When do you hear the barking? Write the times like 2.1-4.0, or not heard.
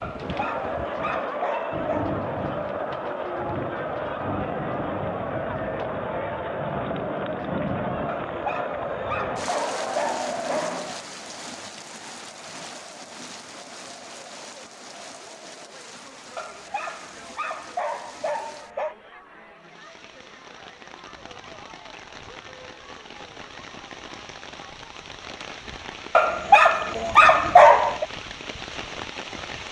0.0-2.1, 8.1-10.8, 16.4-18.9, 26.1-28.1.